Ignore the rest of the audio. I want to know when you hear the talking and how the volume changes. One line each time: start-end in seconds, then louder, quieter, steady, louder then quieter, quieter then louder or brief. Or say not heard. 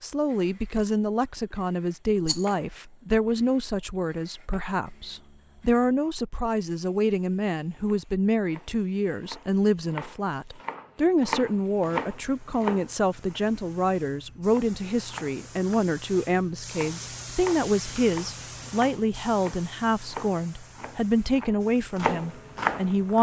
0.0-23.1 steady.